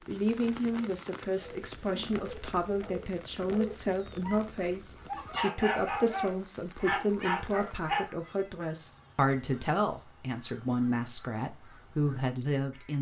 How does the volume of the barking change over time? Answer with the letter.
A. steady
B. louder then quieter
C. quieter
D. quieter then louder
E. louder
E.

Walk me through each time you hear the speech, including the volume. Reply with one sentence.
The speech can be heard from 0.1 to 12.9 s, at a steady volume.